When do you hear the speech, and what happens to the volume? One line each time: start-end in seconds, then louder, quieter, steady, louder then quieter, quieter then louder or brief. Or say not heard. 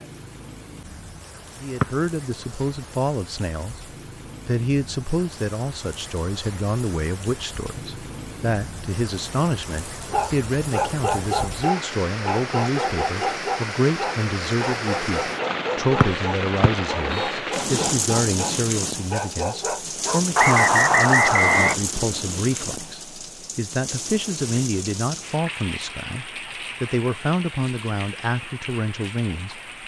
1.6-29.6 steady.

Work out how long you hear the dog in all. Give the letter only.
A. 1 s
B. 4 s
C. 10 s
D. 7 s
C.